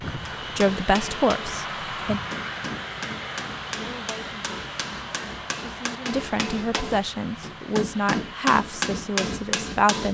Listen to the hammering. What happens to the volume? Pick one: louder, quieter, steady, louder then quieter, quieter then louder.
louder.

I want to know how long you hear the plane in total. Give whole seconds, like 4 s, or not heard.
10 s.